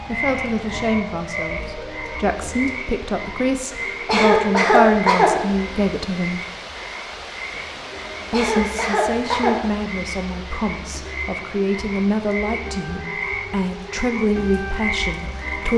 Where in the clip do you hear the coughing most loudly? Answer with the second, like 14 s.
5 s.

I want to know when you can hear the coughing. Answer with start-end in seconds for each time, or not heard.
4.0-5.3, 8.3-9.6.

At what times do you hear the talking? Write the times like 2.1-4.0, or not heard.
0.1-6.4, 8.3-15.7.